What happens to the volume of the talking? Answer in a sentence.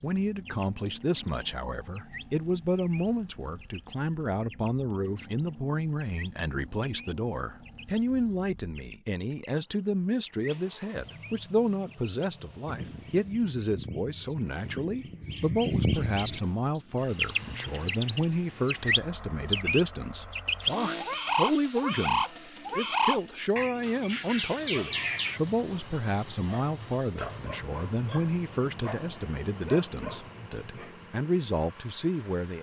The volume of the talking stays about the same.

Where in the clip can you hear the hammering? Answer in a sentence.
The hammering can't be heard in this clip.